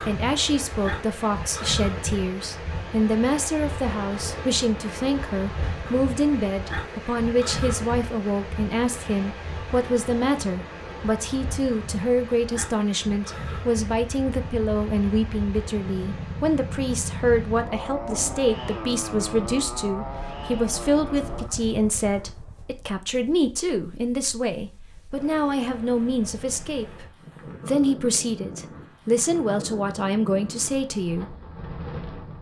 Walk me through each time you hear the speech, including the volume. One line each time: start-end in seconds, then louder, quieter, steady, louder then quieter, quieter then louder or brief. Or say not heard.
0.1-31.4 steady.